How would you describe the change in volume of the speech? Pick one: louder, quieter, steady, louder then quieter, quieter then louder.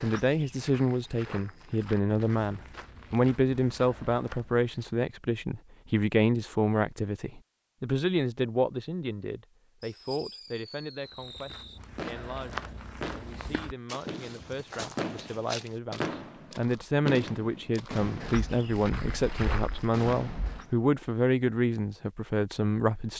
quieter then louder.